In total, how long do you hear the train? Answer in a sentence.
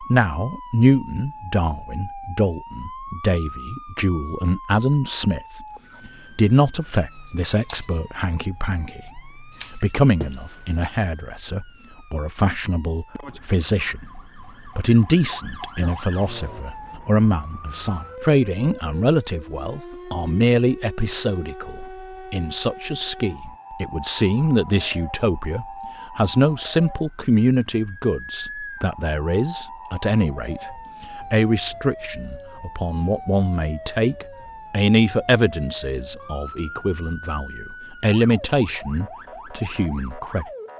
You can't hear the train here.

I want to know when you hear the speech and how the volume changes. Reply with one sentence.
The speech can be heard from 0.0 to 40.5 s, at a steady volume.